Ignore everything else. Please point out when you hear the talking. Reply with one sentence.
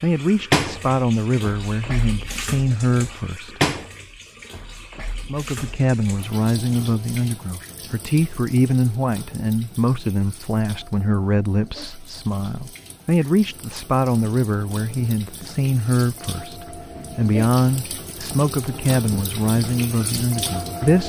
You can hear the talking from 0.0 to 3.6 s and from 5.2 to 21.0 s.